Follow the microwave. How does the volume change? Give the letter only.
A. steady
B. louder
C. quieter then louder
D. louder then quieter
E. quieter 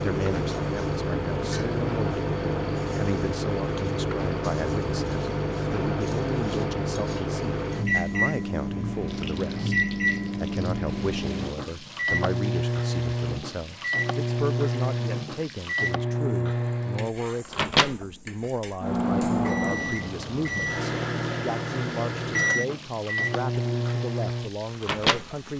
A.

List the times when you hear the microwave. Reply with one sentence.
The microwave can be heard from 0.0 to 25.4 s.